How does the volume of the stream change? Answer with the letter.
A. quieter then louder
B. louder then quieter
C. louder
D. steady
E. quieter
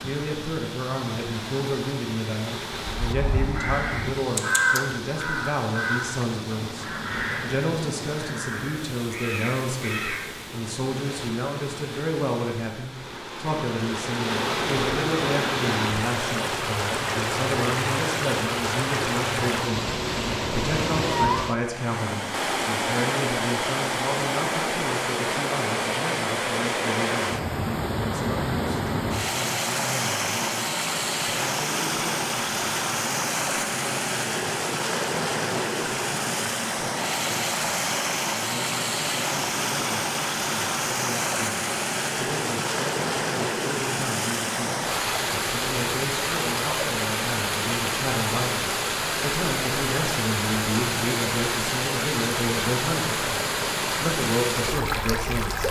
C.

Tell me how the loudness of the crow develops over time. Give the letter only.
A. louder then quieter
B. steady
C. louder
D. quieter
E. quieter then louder
A.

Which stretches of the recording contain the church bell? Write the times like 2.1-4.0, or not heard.
not heard.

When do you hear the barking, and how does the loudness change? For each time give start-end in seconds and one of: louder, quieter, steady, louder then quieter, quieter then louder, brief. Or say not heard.
not heard.